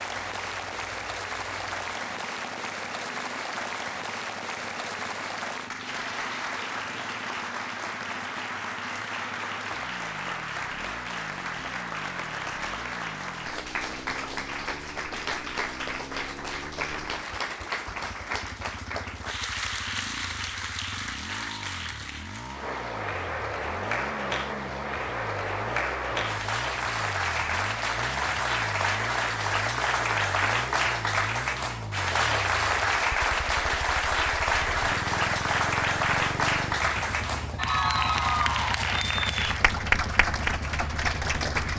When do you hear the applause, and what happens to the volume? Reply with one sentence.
The applause can be heard from 0.0 to 41.7 s, getting louder.